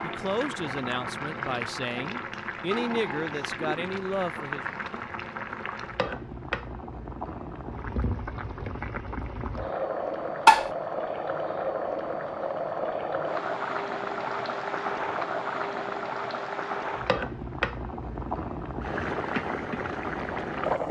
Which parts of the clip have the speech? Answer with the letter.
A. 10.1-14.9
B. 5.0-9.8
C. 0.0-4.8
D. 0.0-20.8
C.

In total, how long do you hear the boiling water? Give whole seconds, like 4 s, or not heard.
21 s.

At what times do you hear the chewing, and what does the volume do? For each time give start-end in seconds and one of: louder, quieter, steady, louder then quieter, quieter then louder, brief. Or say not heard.
not heard.